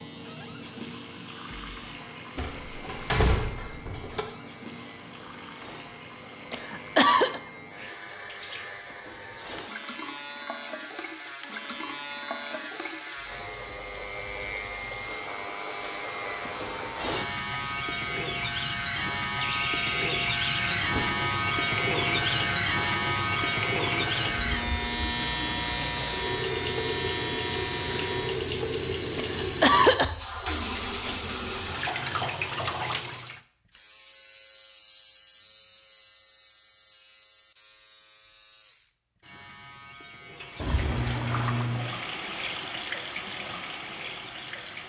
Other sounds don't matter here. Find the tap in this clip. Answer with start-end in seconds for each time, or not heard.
0.0-33.4, 40.3-44.8.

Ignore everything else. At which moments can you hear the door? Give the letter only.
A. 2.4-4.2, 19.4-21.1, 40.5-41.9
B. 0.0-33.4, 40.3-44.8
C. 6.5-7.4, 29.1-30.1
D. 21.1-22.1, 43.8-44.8
A.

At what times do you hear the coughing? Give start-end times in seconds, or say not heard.
6.5-7.4, 29.1-30.1.